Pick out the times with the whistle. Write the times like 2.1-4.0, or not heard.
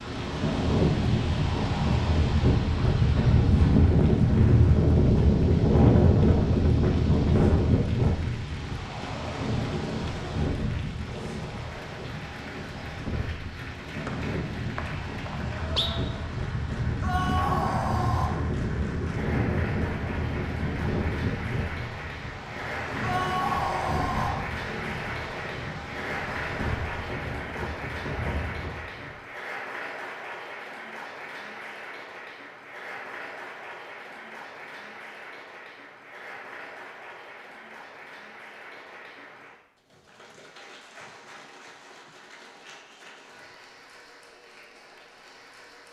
14.1-15.9.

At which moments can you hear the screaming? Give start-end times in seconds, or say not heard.
17.0-18.3, 23.0-24.4.